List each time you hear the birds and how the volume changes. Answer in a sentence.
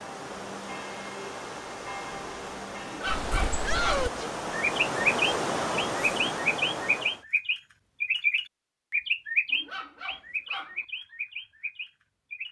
The birds can be heard from 3.0 to 12.4 s, getting quieter.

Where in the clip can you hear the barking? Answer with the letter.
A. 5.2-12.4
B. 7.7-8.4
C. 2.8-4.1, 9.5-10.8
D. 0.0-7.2
C.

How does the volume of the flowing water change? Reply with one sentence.
The volume of the flowing water goes up.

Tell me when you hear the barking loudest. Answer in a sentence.
The loudest moment of the barking is at 3 seconds.